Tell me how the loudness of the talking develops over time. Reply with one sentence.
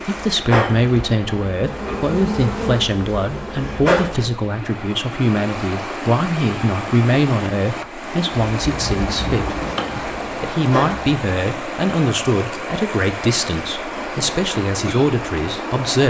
The loudness of the talking stays about the same.